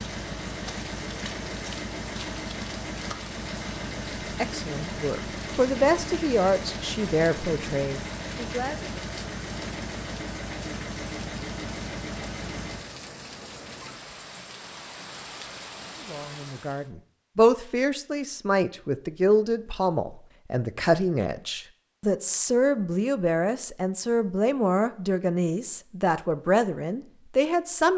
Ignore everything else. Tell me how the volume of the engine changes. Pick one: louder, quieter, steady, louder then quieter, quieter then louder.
steady.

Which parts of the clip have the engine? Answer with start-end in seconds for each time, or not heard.
0.0-12.9.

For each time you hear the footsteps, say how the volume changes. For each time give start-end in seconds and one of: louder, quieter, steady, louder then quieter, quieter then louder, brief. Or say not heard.
not heard.